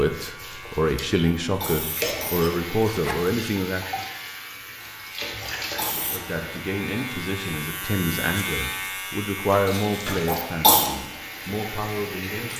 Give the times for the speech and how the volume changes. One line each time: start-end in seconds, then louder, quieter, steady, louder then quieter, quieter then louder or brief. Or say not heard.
0.0-4.0 steady
6.1-12.5 louder then quieter.